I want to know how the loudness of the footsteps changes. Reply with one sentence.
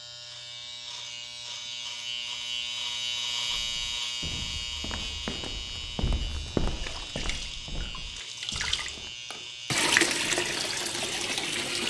The volume of the footsteps goes up, then down.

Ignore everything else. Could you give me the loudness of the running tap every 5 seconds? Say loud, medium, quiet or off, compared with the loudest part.
off, loud, loud.